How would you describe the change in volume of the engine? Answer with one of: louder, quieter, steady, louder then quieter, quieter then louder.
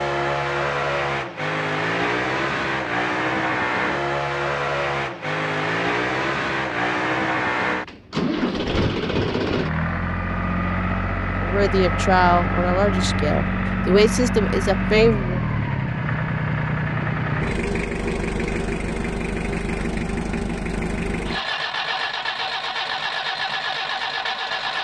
steady.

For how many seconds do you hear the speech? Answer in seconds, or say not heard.
4 s.